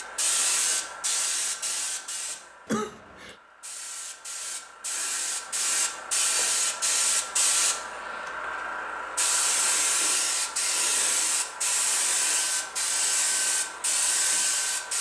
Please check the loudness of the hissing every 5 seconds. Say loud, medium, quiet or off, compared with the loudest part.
medium, loud, loud.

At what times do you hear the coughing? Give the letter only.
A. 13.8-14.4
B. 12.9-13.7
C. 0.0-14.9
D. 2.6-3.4
D.